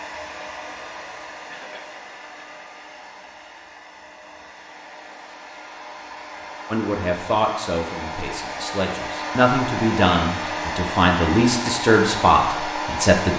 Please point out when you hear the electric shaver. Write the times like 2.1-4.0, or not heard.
not heard.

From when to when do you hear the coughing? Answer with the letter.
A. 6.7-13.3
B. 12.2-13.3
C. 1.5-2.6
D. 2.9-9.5
C.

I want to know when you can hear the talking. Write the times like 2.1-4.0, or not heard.
6.7-13.3.